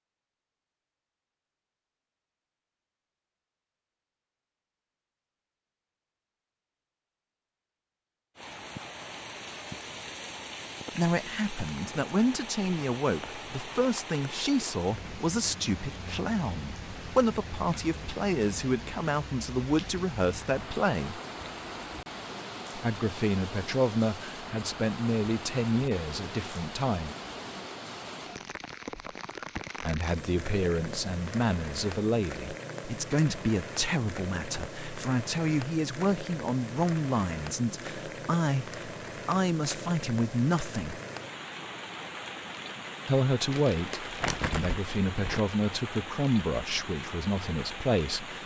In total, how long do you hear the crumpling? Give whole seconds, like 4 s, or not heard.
2 s.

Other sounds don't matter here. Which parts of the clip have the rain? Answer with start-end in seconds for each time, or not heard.
8.3-48.4.